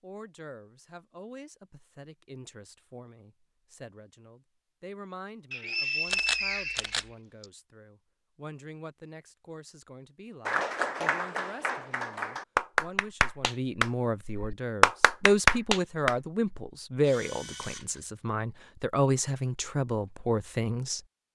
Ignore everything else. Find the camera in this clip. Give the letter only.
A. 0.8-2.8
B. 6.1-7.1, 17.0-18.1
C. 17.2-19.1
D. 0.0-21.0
B.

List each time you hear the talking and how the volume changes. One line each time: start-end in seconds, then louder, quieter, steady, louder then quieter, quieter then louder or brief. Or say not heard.
0.0-21.0 louder.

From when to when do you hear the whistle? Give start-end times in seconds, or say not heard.
5.5-7.5.